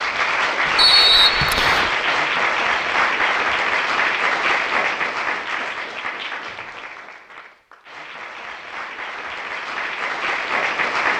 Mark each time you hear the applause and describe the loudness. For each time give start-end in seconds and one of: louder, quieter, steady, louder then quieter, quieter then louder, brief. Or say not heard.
0.0-11.1 quieter then louder.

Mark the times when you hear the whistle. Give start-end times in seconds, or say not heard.
0.8-1.9.